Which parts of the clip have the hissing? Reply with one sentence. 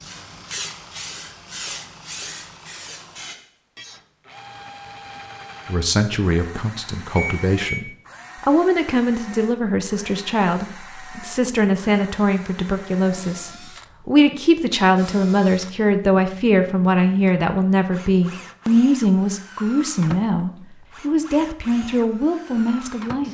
The hissing can be heard from 0.0 to 3.4 s.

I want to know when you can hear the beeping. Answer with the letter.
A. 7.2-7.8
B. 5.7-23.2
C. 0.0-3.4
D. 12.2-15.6
A.